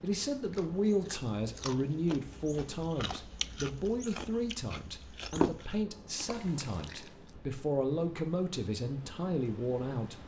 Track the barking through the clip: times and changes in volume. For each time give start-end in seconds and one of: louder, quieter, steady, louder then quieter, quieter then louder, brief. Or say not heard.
not heard.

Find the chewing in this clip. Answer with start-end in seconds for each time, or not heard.
0.5-7.3.